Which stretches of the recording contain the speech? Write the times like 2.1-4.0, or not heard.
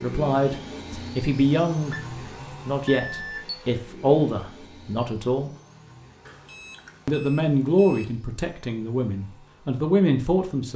0.0-2.0, 2.6-5.5, 7.0-10.7.